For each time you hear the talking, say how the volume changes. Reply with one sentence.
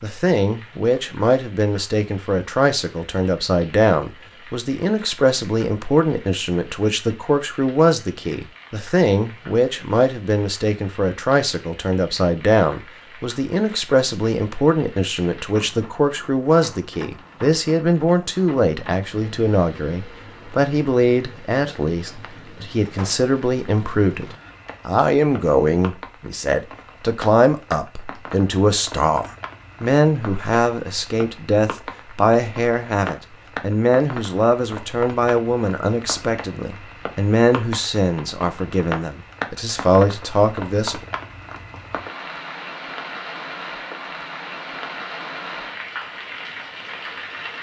You can hear the talking from 0.0 to 41.0 s, at a steady volume.